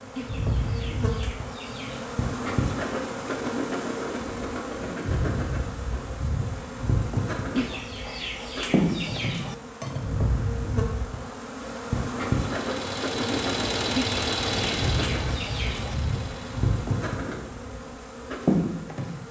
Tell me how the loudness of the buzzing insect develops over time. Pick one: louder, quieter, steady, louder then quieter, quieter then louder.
steady.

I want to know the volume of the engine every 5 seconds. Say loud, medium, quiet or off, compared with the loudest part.
off, off, loud, medium.